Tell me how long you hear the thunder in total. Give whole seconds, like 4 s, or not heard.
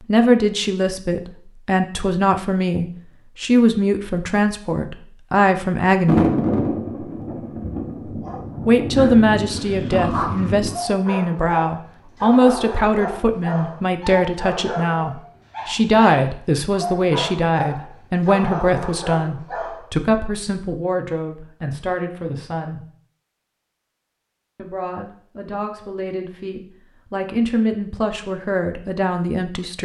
5 s.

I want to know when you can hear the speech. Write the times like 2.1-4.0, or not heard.
0.1-6.3, 8.7-22.9, 24.6-29.7.